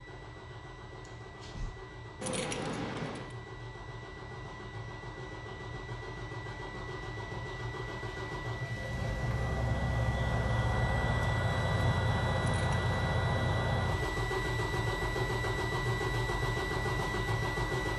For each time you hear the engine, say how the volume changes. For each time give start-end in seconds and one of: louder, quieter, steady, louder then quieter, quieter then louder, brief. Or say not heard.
0.0-17.9 louder.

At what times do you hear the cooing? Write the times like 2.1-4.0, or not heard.
not heard.